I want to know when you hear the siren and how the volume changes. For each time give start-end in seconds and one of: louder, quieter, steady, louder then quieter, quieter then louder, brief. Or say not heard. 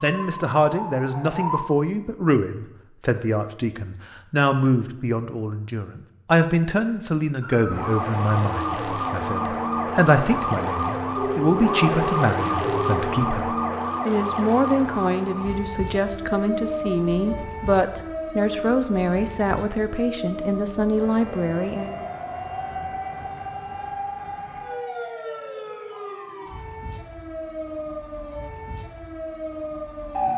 0.1-1.6 brief
7.4-30.3 quieter.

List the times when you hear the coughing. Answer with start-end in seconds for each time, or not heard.
not heard.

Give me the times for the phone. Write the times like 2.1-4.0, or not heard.
11.2-13.1.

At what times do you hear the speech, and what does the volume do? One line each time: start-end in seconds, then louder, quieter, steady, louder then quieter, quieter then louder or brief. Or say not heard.
0.0-22.1 steady.